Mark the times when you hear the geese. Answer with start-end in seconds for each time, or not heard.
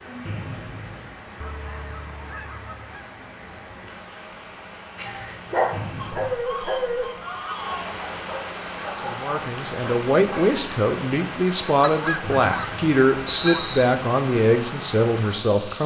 1.4-3.1, 6.0-7.9, 11.8-13.7.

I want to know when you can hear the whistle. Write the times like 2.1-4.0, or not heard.
0.2-1.2, 5.7-6.3, 12.2-13.8.